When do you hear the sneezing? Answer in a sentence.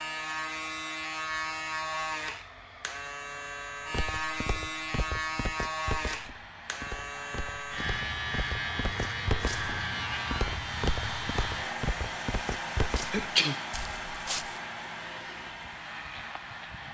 You can hear the sneezing from 13.1 to 13.7 s.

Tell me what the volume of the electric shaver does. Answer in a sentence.
The loudness of the electric shaver goes down.